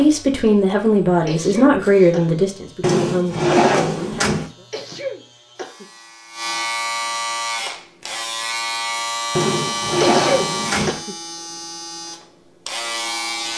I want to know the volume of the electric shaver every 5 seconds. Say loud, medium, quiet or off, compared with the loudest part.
quiet, loud, loud.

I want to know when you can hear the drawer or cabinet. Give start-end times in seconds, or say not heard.
2.8-4.5, 9.3-11.0.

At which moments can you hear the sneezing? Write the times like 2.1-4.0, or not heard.
1.2-2.4, 4.7-5.8, 10.0-11.2.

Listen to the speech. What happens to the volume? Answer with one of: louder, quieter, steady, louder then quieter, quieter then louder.
quieter.